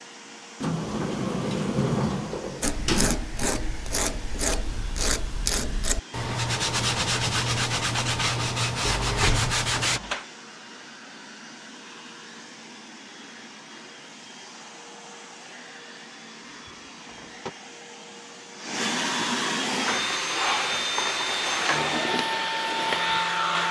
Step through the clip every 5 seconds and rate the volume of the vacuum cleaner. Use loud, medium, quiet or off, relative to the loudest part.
quiet, quiet, quiet, medium, loud.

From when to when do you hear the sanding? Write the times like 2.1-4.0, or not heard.
2.6-10.0.